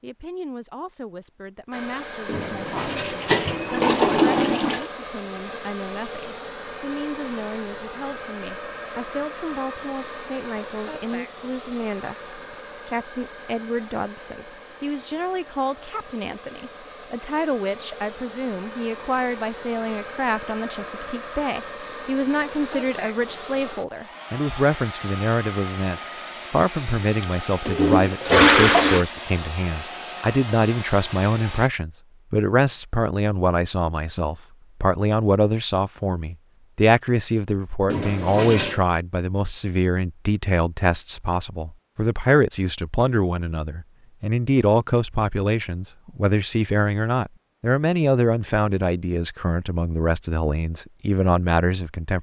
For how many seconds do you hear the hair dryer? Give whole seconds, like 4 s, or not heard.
30 s.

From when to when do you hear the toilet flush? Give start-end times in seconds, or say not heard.
2.2-4.9, 27.2-29.1, 37.9-38.9.